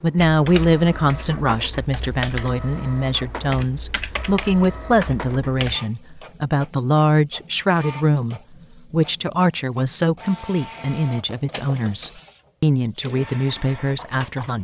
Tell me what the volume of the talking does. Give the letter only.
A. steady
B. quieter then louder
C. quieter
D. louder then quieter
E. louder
A.